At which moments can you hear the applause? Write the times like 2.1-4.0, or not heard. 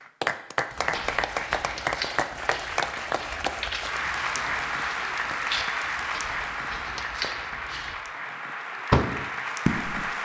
0.0-10.1.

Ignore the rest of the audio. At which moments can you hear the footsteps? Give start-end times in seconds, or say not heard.
0.7-8.0.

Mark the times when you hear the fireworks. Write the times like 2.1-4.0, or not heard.
8.9-10.1.